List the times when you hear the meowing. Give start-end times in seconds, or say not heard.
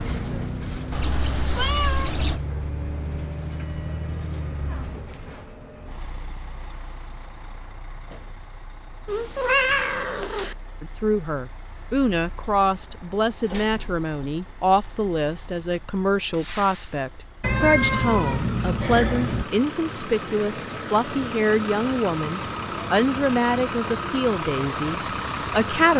0.9-2.4, 9.1-10.6, 17.4-19.4.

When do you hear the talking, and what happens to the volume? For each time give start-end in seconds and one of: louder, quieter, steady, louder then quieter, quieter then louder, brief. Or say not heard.
10.8-25.9 steady.